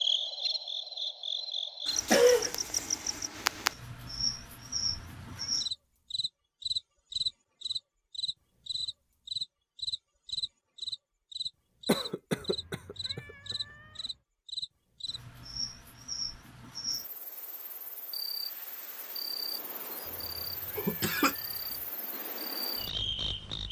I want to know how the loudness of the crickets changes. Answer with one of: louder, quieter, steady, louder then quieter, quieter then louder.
quieter.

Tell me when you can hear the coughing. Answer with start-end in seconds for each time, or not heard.
2.1-2.5, 11.8-13.2, 20.8-21.4.